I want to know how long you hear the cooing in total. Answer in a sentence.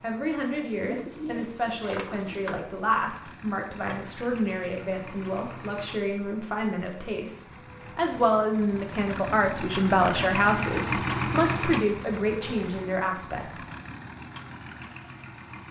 You can hear the cooing for 2 seconds altogether.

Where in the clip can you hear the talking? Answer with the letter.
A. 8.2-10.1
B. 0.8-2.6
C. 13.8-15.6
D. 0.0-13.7
D.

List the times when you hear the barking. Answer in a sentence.
You can't hear the barking here.